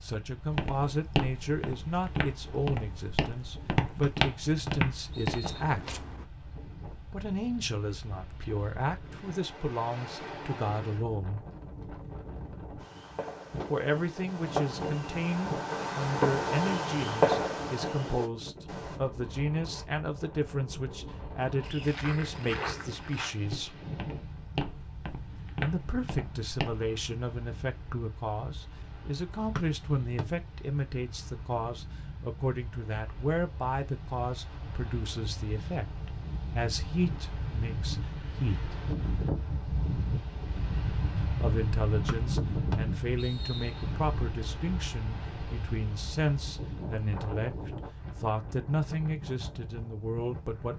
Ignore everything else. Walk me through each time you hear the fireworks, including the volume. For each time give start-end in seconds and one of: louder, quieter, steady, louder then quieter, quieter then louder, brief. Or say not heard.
12.8-19.0 louder then quieter.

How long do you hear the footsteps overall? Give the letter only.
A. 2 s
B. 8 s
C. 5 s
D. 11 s
D.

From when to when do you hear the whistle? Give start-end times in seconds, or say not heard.
4.0-5.6, 29.6-30.2, 42.0-43.9.